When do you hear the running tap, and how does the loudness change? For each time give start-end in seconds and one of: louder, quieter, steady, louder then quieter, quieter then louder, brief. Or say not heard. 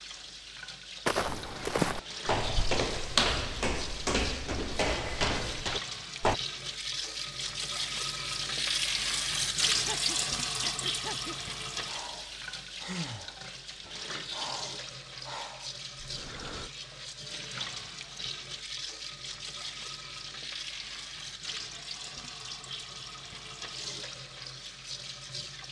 0.0-25.6 louder then quieter.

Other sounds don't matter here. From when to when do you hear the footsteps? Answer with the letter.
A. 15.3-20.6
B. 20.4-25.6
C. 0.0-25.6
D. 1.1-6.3
D.